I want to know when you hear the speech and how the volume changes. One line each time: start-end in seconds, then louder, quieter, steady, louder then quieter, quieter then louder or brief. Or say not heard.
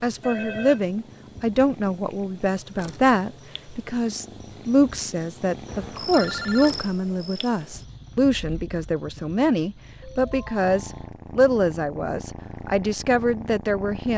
0.0-14.1 steady.